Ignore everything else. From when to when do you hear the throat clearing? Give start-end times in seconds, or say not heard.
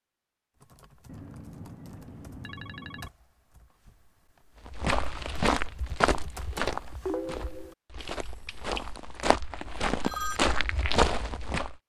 not heard.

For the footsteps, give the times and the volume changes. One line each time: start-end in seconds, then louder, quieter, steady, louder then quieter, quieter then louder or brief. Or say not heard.
4.7-11.8 quieter then louder.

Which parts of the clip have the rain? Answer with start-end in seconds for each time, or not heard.
not heard.